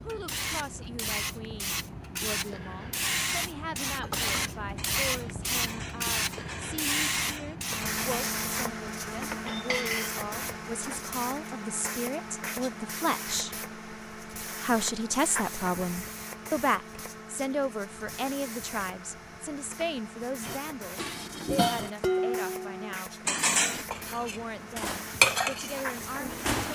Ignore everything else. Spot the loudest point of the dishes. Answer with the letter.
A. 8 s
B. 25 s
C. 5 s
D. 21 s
B.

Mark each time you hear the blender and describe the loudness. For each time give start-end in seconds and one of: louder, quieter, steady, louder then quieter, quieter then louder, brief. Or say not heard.
not heard.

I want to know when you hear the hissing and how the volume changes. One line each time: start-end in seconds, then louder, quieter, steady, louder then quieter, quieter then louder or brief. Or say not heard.
0.0-26.6 quieter.